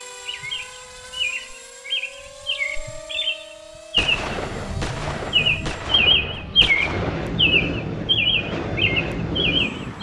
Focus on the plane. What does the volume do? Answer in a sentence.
The loudness of the plane goes up.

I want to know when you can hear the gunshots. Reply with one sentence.
The gunshots can be heard from 4.0 to 7.3 s.